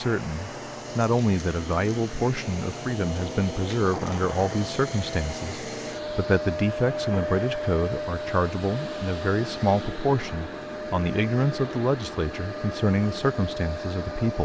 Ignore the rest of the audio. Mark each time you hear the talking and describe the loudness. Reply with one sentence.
You can hear the talking from 0.0 to 14.4 s, at a steady volume.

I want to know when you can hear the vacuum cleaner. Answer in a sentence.
The vacuum cleaner can be heard from 0.0 to 14.4 s.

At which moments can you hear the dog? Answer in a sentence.
You can't hear the dog here.